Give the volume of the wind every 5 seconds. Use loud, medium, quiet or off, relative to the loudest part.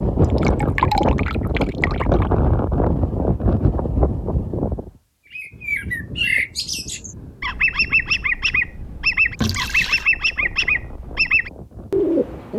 loud, quiet, quiet.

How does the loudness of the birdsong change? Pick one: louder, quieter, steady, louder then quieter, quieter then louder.
steady.